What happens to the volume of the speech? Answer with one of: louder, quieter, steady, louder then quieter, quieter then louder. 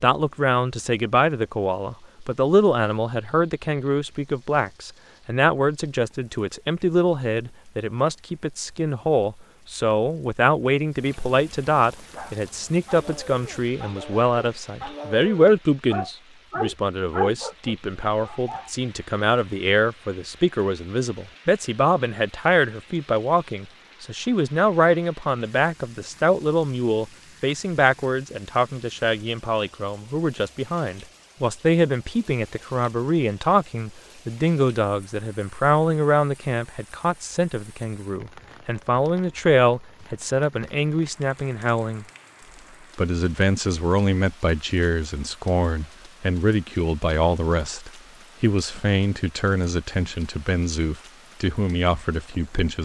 steady.